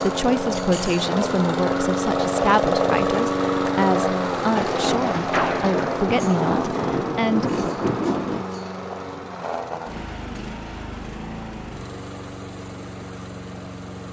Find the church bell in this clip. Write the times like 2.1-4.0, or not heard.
not heard.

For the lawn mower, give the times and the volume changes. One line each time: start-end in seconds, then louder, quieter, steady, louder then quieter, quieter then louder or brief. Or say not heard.
0.0-14.0 quieter.